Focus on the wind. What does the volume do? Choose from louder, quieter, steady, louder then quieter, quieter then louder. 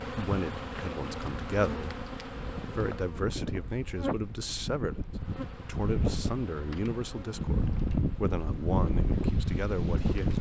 louder.